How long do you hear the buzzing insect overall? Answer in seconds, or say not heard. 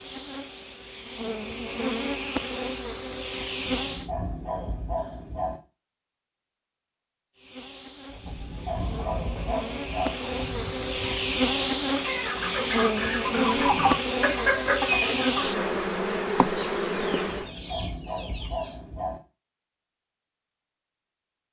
14 s.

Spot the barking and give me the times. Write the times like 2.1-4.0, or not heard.
3.6-5.6, 8.2-10.2, 17.2-19.2.